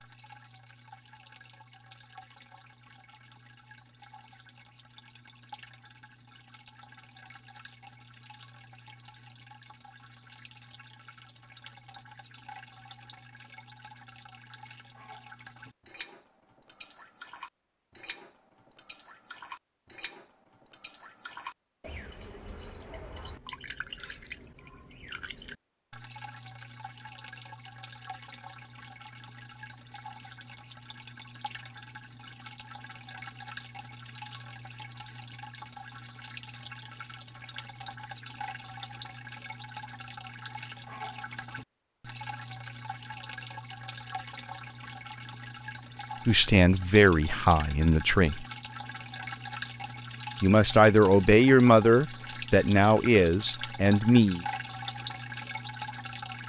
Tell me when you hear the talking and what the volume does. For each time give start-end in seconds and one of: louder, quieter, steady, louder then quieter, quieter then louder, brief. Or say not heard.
46.2-48.5 brief
50.4-54.5 quieter.